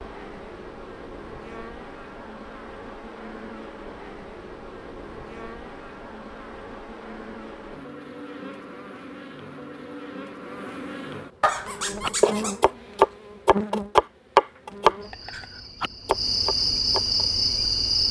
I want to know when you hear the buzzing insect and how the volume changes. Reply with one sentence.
You can hear the buzzing insect from 0.0 to 18.0 s, getting louder.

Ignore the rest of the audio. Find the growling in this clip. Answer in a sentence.
You can hear the growling from 11.4 to 12.7 s.